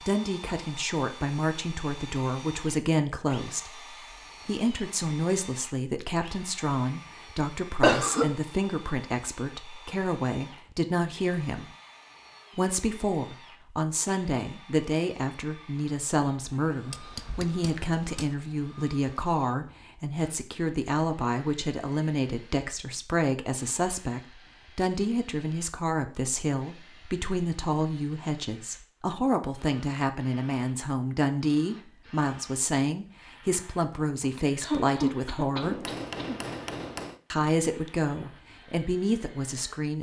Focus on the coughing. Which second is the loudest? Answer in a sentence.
The volume of the coughing peaks at 8 seconds.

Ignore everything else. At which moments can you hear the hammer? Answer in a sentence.
You can hear the hammer from 16.9 to 18.4 s and from 35.6 to 37.2 s.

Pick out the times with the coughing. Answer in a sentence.
The coughing can be heard from 7.8 to 8.3 s and from 34.0 to 36.4 s.